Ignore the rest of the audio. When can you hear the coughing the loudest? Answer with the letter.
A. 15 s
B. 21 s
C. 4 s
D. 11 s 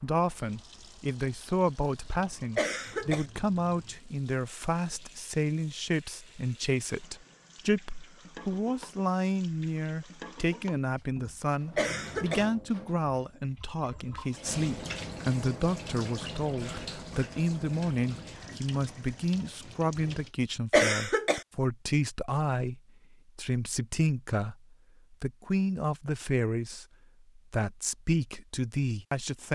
B.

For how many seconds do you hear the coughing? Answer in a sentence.
You can hear the coughing for 2 seconds altogether.